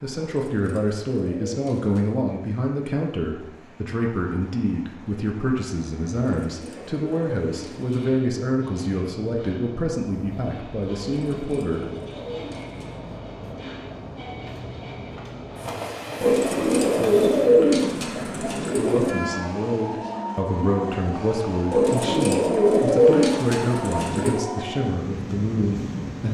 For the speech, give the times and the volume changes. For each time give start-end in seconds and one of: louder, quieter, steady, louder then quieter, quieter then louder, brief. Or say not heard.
0.0-11.8 steady
18.8-26.3 steady.